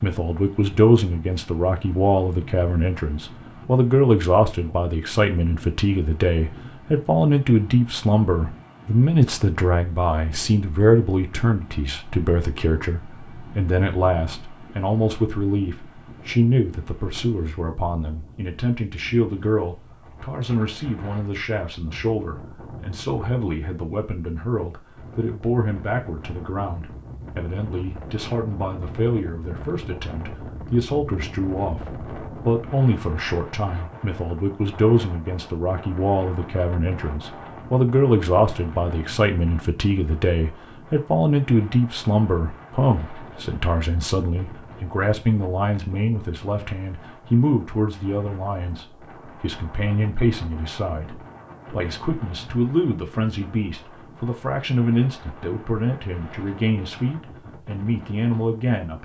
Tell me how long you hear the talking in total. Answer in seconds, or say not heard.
59 s.